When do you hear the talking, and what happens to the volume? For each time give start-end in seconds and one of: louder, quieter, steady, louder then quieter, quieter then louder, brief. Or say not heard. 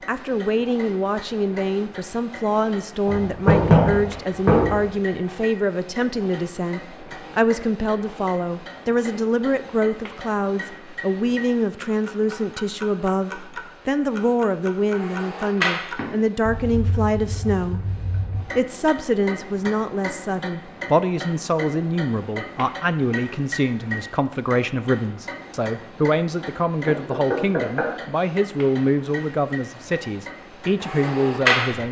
0.1-31.8 steady.